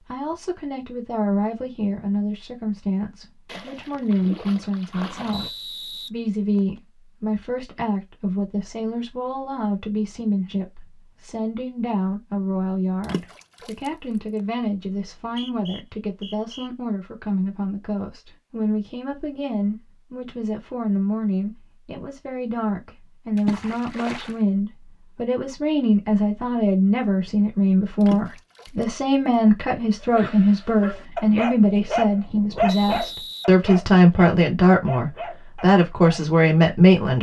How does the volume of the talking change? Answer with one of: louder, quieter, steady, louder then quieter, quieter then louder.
louder.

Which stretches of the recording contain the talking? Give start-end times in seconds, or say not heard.
0.1-37.1.